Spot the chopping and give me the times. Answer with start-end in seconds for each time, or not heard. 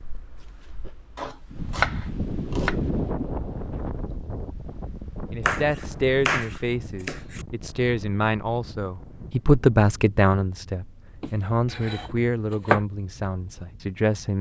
1.1-2.8, 5.5-7.5, 11.2-12.8.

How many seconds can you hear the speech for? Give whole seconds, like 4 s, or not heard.
9 s.